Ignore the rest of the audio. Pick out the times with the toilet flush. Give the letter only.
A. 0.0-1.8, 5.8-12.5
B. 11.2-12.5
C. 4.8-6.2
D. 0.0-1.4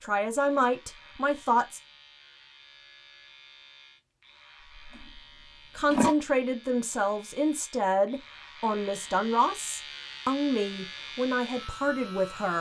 C.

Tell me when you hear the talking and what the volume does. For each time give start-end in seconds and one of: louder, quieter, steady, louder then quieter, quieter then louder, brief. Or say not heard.
0.0-1.8 brief
5.8-12.5 steady.